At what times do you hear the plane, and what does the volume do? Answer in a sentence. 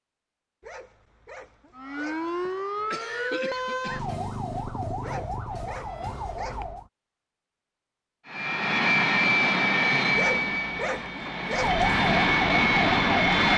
You can hear the plane from 8.2 to 13.5 s, getting quieter then louder.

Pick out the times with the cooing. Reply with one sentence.
The cooing can't be heard in this clip.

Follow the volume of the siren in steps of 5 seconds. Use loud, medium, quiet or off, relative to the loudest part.
loud, medium, loud.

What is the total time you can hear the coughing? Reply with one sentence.
The coughing can be heard for 2 seconds in total.